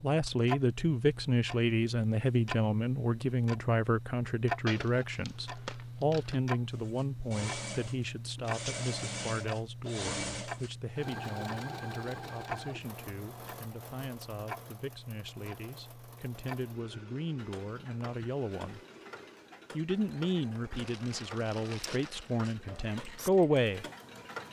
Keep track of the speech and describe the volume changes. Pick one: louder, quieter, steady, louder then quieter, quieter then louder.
quieter then louder.